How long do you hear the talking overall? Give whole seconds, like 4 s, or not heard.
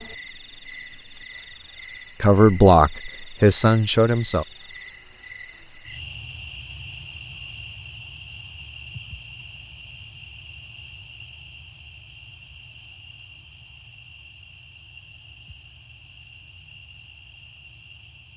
2 s.